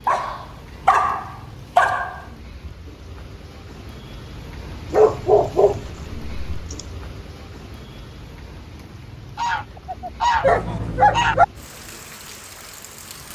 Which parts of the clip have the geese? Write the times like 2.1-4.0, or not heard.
9.3-11.3.